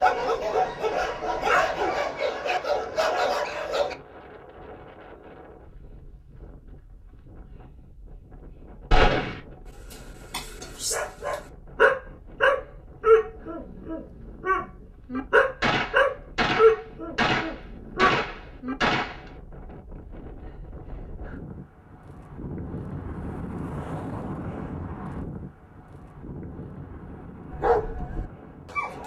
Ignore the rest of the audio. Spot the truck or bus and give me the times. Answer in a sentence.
The truck or bus can't be heard in this clip.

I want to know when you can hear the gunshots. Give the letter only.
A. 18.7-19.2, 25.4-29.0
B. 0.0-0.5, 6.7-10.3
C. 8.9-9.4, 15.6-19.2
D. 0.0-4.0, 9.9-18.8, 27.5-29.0
C.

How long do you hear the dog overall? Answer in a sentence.
The dog can be heard for 14 seconds in total.